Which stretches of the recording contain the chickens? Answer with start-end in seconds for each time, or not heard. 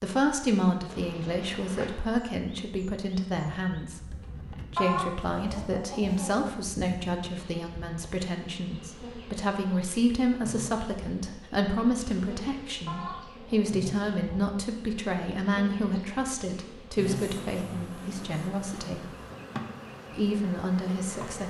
4.8-6.5, 12.8-14.6.